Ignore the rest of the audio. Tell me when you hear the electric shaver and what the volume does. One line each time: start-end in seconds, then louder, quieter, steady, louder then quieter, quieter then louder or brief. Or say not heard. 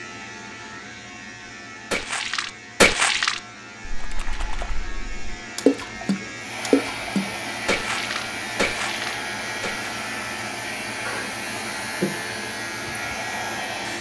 0.0-13.9 louder.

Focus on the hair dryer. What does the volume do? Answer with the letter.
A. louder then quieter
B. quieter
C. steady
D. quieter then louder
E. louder
C.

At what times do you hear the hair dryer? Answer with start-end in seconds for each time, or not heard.
6.3-13.9.